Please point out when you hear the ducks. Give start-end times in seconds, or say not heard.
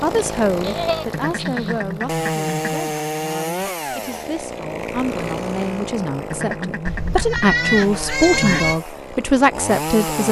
1.1-2.8, 6.3-8.7.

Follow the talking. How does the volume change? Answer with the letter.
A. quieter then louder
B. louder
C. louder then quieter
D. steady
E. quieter
A.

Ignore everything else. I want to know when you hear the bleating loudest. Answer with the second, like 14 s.
8 s.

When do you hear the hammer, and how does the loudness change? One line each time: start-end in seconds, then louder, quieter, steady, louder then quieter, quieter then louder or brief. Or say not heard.
not heard.